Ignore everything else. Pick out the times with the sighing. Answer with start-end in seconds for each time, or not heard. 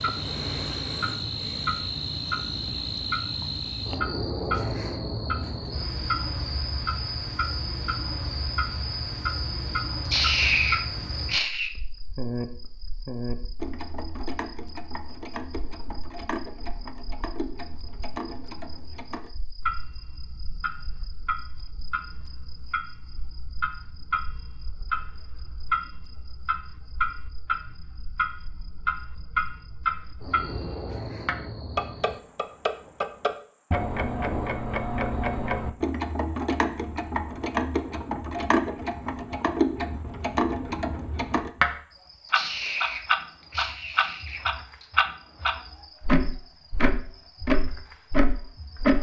10.1-11.7, 42.2-44.9.